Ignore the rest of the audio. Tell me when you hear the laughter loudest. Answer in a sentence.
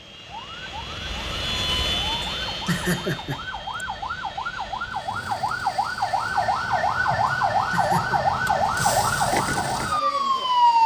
The loudest moment of the laughter is at 3 seconds.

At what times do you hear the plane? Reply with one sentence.
The plane can be heard from 0.0 to 10.8 s.